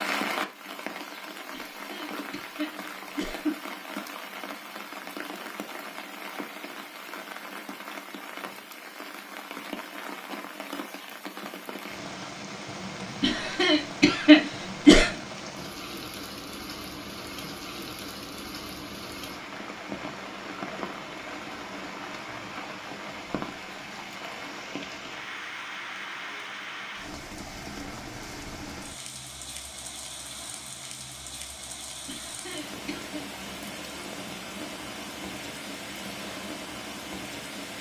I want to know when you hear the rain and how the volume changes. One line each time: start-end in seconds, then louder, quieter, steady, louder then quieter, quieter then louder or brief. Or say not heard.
0.0-37.7 steady.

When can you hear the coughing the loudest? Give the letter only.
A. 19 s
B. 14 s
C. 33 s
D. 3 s
B.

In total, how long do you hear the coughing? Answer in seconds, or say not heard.
5 s.